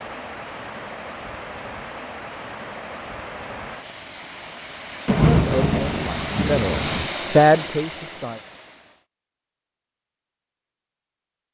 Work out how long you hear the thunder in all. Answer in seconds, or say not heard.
2 s.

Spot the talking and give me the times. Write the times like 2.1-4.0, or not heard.
5.3-8.4.